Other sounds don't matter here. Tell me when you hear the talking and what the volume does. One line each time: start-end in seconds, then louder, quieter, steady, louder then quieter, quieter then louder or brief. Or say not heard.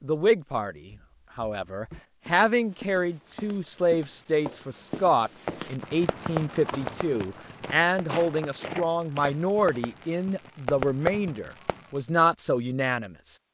0.0-13.3 steady.